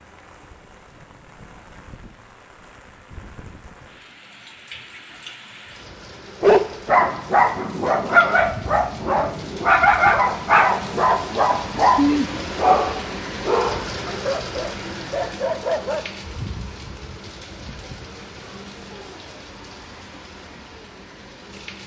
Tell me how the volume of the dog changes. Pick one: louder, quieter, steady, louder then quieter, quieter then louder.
quieter.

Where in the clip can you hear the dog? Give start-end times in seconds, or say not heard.
6.4-16.1.